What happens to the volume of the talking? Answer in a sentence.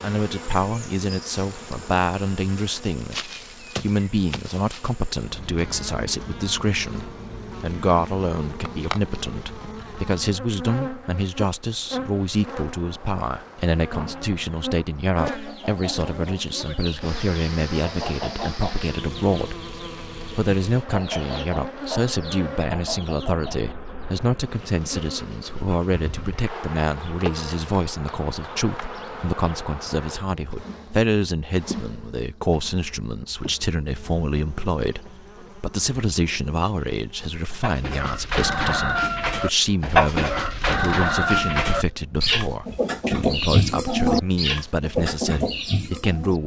The loudness of the talking stays about the same.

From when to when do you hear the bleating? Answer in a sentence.
You can't hear the bleating here.